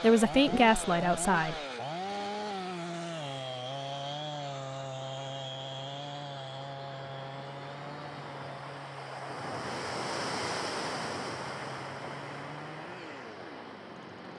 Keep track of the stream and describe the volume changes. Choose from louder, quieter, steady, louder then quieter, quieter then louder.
louder then quieter.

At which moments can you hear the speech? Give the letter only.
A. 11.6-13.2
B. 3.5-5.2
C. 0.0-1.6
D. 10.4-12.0
C.